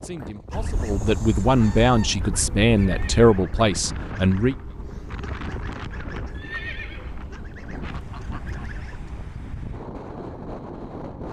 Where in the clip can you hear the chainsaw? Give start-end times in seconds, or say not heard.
not heard.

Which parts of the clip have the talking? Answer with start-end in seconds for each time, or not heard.
0.0-4.5.